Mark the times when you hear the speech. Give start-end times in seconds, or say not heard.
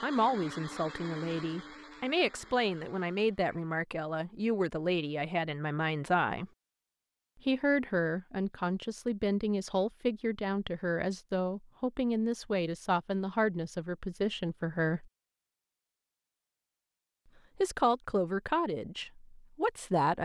0.0-6.5, 7.5-15.1, 17.6-20.2.